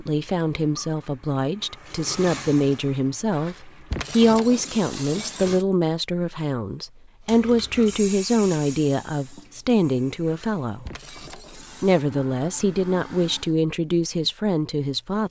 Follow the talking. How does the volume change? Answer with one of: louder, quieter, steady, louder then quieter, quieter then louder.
steady.